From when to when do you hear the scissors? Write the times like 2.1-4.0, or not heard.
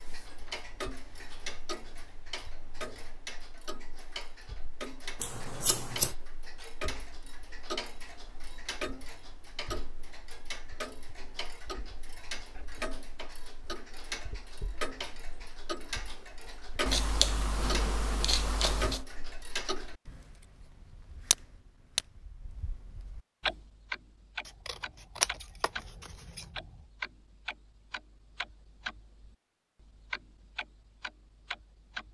5.2-6.2, 16.9-19.1, 24.4-26.7.